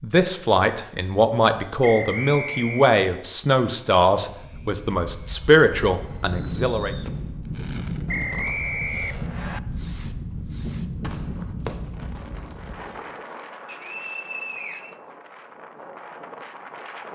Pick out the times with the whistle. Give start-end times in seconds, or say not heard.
1.8-2.9, 8.1-9.6, 13.7-14.9.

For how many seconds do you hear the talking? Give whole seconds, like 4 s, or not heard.
7 s.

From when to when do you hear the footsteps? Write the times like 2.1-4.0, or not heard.
not heard.